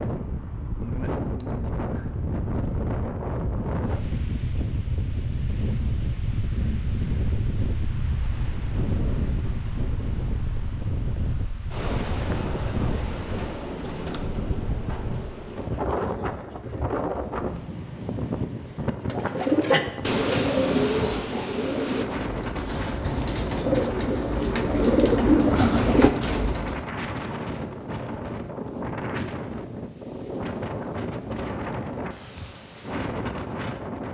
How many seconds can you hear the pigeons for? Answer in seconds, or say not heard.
8 s.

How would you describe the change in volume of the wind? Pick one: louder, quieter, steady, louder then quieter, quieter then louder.
steady.